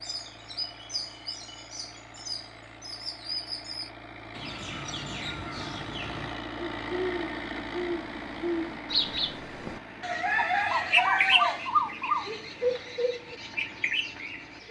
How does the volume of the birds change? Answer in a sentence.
The volume of the birds goes up, then down.